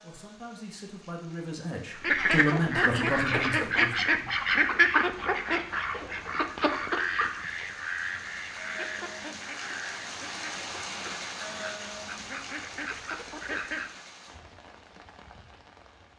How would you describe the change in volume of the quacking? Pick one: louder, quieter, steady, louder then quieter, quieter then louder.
quieter.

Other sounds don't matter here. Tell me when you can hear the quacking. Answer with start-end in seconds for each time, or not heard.
2.0-13.9.